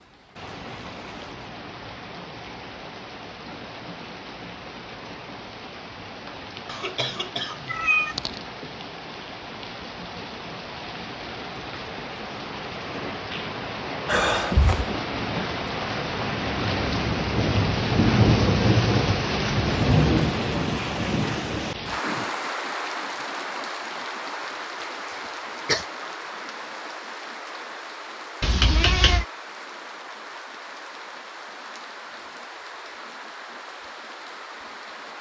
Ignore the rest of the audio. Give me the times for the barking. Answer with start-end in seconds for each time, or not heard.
not heard.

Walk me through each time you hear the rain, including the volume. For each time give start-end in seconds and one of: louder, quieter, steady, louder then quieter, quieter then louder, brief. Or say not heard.
0.0-35.1 louder then quieter.